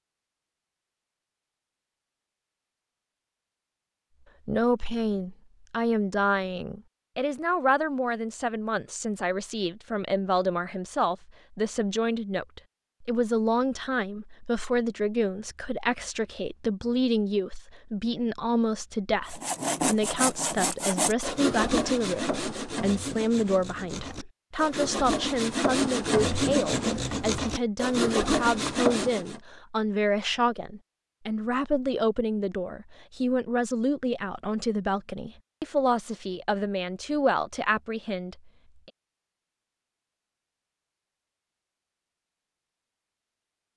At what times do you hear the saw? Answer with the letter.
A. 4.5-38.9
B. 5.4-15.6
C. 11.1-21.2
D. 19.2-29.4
D.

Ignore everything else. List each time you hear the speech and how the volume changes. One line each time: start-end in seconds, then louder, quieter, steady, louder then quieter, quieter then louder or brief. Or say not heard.
4.5-38.9 steady.